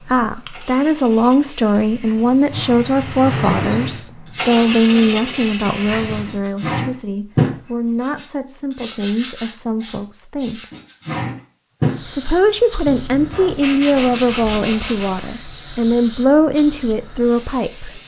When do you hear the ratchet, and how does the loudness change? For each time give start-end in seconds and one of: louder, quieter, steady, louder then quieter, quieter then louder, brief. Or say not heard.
not heard.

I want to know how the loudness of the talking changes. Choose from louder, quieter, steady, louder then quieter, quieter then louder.
quieter then louder.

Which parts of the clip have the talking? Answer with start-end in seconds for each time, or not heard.
0.1-10.7, 12.1-18.0.